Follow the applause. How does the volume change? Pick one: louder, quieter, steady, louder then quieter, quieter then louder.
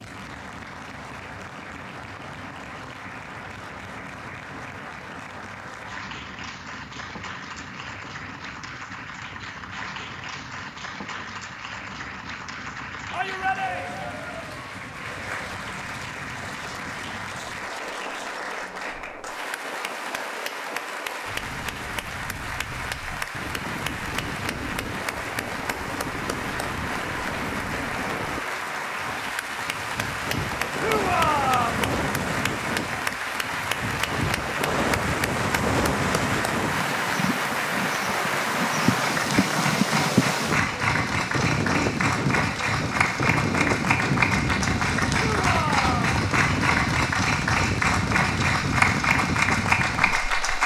louder.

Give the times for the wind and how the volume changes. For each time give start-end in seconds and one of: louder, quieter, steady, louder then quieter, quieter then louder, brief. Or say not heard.
0.0-50.6 louder.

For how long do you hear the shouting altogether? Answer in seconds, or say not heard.
3 s.